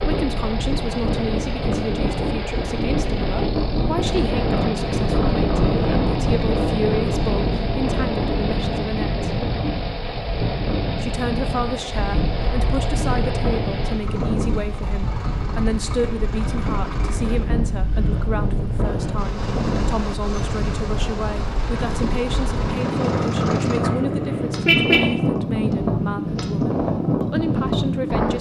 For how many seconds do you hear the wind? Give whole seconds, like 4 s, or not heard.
28 s.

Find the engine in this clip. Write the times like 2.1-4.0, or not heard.
0.0-23.8.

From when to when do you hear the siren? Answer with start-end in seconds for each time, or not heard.
not heard.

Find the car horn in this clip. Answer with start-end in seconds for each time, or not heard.
23.8-25.1.